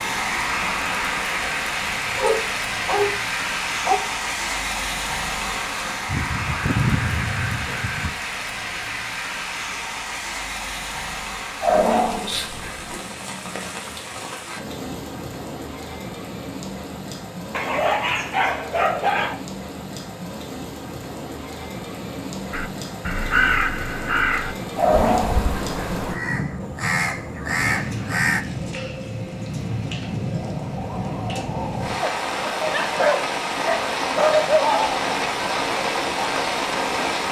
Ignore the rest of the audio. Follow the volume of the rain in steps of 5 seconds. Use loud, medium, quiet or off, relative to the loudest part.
loud, medium, medium, medium, medium, medium, loud, loud.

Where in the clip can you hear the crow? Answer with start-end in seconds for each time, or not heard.
6.0-8.2, 22.5-28.4.